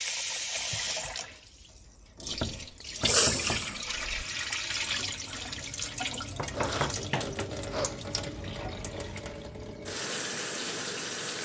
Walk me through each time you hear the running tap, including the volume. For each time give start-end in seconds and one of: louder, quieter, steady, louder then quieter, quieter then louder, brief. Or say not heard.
0.0-11.4 steady.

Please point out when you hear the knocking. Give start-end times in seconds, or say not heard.
2.3-4.2, 6.3-7.5.